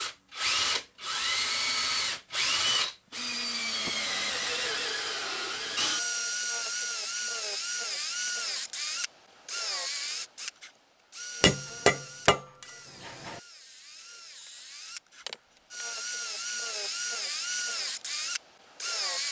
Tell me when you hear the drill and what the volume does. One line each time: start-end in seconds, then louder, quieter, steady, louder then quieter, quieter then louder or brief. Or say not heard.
0.0-19.2 quieter then louder.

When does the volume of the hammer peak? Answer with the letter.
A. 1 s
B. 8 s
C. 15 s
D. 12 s
D.